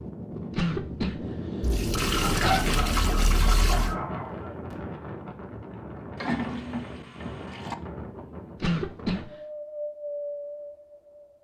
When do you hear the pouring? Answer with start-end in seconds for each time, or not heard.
1.6-4.0, 6.2-7.8.